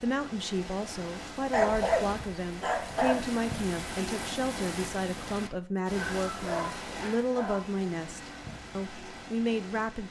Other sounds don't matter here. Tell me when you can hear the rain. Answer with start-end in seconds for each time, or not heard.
0.0-10.0.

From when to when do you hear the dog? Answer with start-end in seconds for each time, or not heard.
1.5-3.3, 5.9-7.6.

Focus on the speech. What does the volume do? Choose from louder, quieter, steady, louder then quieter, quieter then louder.
steady.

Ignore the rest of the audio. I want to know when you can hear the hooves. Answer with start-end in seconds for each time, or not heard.
not heard.